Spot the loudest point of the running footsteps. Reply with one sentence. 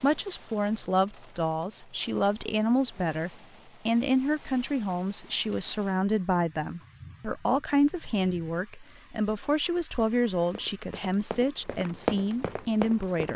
The volume of the running footsteps peaks at 12 seconds.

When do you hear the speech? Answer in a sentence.
The speech can be heard from 0.0 to 13.3 s.